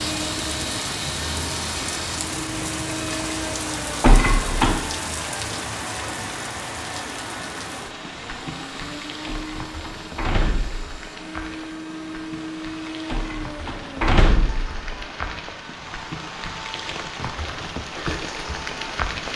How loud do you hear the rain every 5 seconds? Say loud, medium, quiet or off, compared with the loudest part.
loud, loud, medium, loud.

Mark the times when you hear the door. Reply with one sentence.
The door can be heard from 4.0 to 4.8 s, from 9.2 to 11.0 s and from 13.1 to 14.8 s.